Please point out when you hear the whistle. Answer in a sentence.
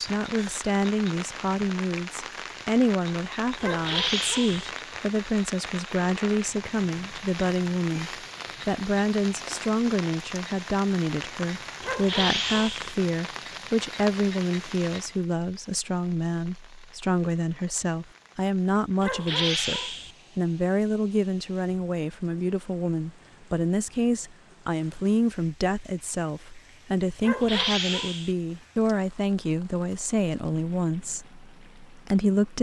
The whistle can't be heard in this clip.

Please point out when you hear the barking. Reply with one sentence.
The barking can be heard from 3.6 to 4.7 s, from 11.8 to 12.9 s, from 19.0 to 20.1 s and from 27.2 to 28.4 s.